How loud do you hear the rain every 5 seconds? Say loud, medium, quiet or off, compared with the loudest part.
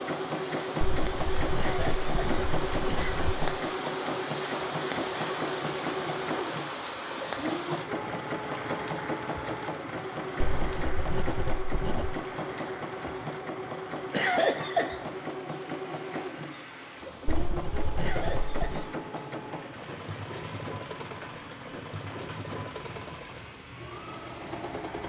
loud, loud, medium, medium, medium.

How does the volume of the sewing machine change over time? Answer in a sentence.
The volume of the sewing machine goes down.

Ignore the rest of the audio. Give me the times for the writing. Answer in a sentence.
The writing can be heard from 0.8 to 3.4 s, from 10.4 to 12.2 s and from 17.2 to 18.9 s.